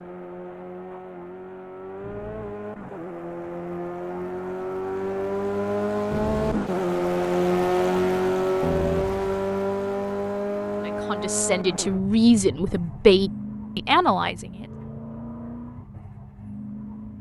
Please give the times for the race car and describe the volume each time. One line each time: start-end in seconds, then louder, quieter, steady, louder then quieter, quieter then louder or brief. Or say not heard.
0.0-17.1 louder then quieter.